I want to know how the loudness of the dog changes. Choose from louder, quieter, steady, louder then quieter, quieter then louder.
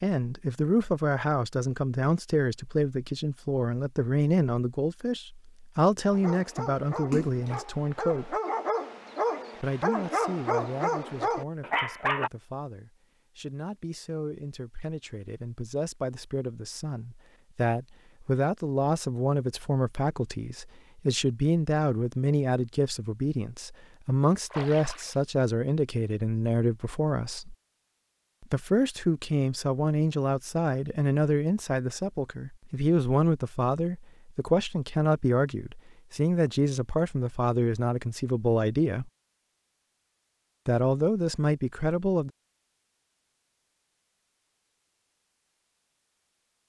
louder.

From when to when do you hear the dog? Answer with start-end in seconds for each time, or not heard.
6.1-12.3.